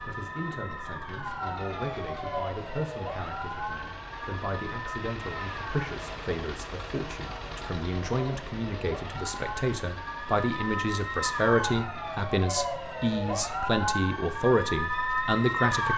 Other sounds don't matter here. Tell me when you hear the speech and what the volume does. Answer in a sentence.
The speech can be heard from 0.1 to 15.9 s, getting louder.